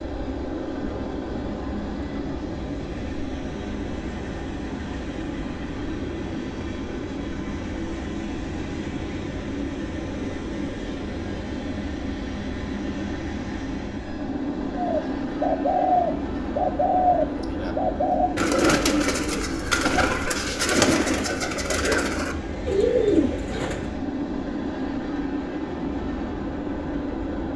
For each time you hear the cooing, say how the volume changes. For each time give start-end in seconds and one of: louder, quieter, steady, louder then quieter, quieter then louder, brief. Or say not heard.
14.8-23.9 steady.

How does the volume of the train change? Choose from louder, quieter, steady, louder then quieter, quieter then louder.
steady.